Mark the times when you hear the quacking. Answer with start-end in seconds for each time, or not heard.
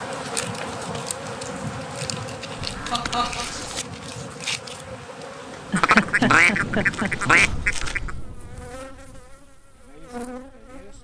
2.5-3.8, 5.8-8.2.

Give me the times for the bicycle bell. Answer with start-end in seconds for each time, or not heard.
not heard.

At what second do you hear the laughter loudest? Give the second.
6 s.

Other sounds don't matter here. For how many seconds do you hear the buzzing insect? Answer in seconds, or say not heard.
11 s.